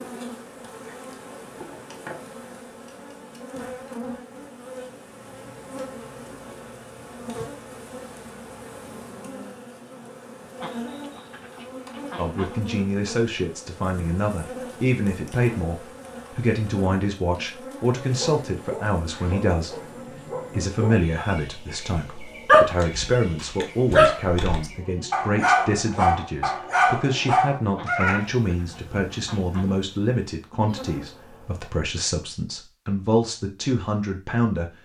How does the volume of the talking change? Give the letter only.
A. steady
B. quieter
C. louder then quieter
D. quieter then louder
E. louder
A.